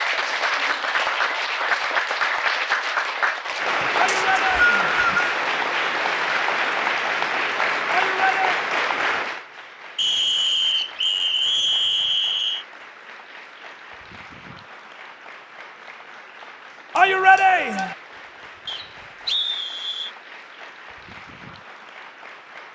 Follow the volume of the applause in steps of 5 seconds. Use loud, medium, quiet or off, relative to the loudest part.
loud, loud, quiet, quiet, quiet.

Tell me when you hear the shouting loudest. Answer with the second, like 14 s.
17 s.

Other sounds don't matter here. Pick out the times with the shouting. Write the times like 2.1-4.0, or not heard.
4.0-5.0, 7.9-8.6, 16.9-17.9.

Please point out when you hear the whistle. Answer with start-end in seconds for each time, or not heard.
4.0-5.3, 9.9-12.7, 18.6-20.1.